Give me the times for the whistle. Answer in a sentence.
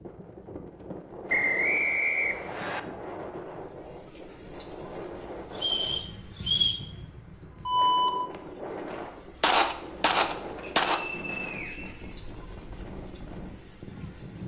You can hear the whistle from 1.2 to 2.8 s, from 5.5 to 6.8 s and from 10.6 to 12.2 s.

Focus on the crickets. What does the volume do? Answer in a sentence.
The loudness of the crickets stays about the same.